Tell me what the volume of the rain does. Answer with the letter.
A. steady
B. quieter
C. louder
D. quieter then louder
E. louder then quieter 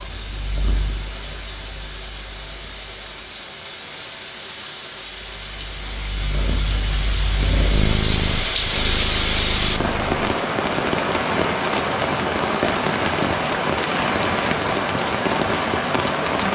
C.